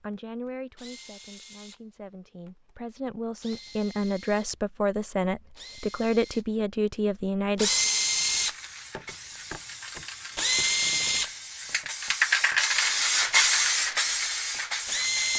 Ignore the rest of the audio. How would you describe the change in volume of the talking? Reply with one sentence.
The loudness of the talking goes up.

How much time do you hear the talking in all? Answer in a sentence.
The talking can be heard for 8 seconds in total.